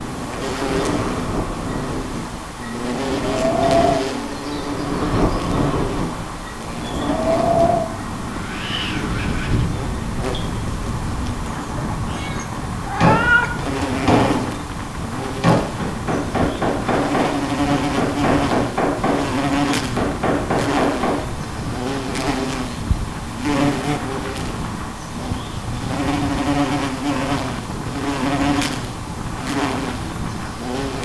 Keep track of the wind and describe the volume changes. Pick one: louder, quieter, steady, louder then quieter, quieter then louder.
quieter.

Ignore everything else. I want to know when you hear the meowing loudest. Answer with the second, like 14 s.
13 s.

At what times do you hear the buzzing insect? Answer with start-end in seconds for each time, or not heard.
0.0-31.0.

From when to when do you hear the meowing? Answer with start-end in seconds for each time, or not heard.
11.8-13.5.